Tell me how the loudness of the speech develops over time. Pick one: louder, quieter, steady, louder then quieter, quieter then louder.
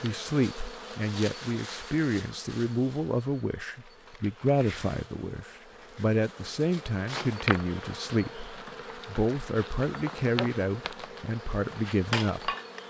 steady.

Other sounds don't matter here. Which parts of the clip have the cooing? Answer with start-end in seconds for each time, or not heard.
not heard.